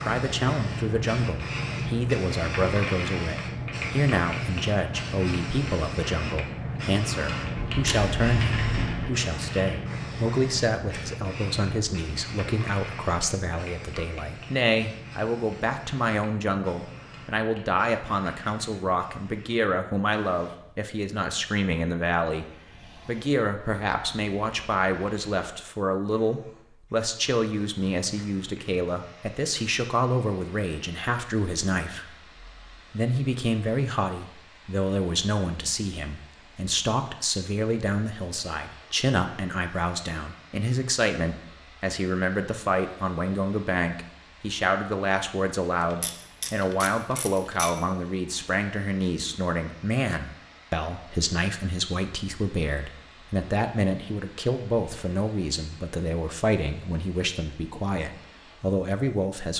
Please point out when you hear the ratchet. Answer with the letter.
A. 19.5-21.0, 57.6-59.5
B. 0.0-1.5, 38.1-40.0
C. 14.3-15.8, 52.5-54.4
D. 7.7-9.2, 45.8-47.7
D.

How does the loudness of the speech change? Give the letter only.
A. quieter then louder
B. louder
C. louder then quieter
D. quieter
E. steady
E.